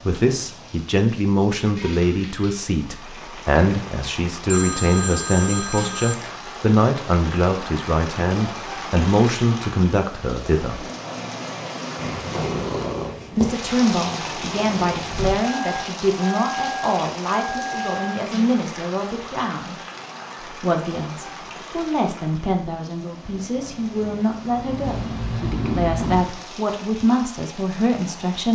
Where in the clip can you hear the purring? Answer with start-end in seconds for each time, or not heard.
11.9-15.3, 23.4-26.2.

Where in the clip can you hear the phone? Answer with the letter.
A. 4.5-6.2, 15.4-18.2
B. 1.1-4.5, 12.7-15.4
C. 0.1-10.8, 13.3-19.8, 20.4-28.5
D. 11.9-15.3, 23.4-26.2
A.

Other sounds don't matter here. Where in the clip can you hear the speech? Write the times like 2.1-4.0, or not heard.
0.1-10.8, 13.3-19.8, 20.4-28.5.